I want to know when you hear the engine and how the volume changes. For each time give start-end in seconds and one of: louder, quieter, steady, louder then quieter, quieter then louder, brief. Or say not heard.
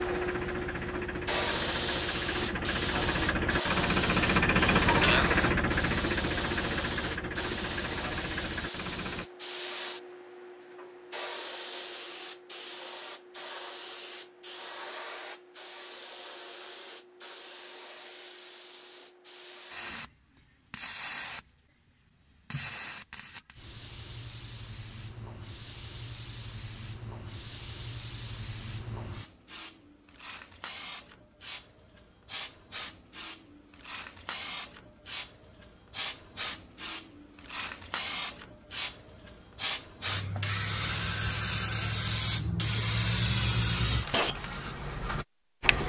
0.0-9.3 louder then quieter.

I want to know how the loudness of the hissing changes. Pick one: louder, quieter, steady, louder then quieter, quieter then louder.
quieter then louder.